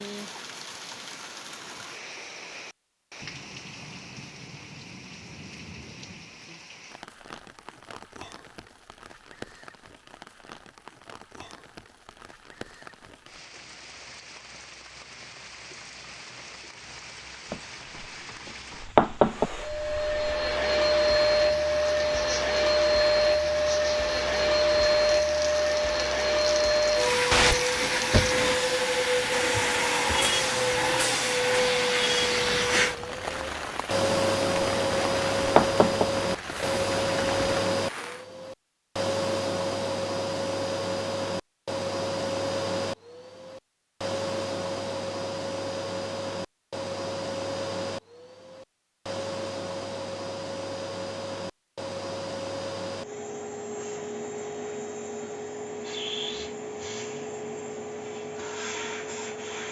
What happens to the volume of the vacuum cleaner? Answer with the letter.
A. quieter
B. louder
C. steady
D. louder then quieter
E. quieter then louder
A.